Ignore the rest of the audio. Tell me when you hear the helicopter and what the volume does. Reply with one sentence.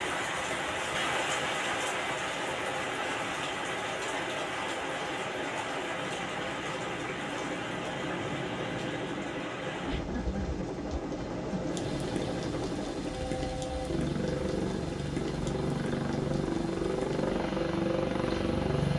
The helicopter can be heard from 0.2 to 18.9 s, getting louder.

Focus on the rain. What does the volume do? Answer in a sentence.
The volume of the rain goes down.